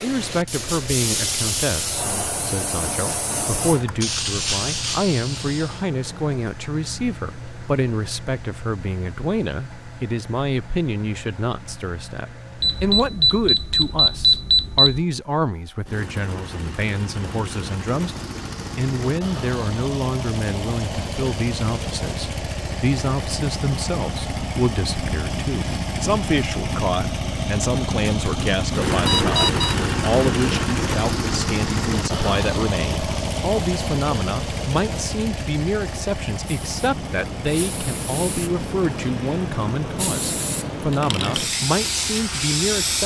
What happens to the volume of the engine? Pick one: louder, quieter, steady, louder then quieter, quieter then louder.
louder then quieter.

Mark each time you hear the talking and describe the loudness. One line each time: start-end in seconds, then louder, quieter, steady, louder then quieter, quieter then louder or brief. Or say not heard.
0.0-43.0 steady.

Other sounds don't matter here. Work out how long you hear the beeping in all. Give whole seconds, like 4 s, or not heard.
3 s.